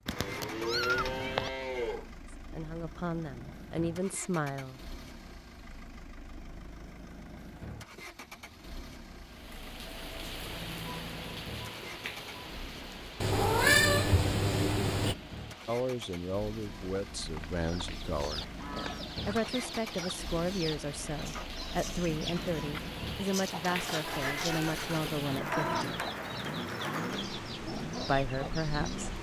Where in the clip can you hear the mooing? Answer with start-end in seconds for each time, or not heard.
0.1-2.1, 17.2-19.1.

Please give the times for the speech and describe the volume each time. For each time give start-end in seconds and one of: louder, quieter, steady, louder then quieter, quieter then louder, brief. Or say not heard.
2.4-4.8 brief
15.7-18.4 brief
19.2-26.1 steady
28.0-29.1 brief.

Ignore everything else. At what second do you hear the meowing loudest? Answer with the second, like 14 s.
14 s.